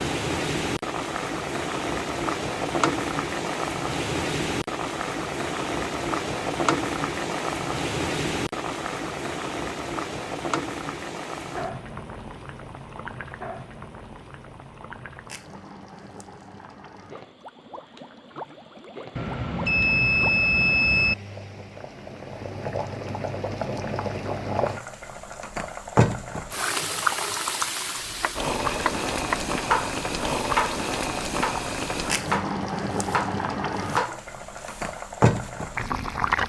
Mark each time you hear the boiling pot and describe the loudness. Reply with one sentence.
The boiling pot can be heard from 0.0 to 36.4 s, getting quieter then louder.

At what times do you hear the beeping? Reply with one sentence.
The beeping can be heard from 19.1 to 21.1 s.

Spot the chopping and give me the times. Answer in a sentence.
The chopping can be heard from 27.9 to 35.5 s.